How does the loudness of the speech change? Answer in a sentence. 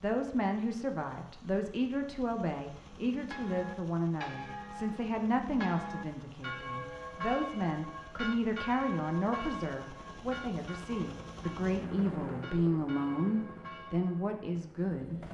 The loudness of the speech stays about the same.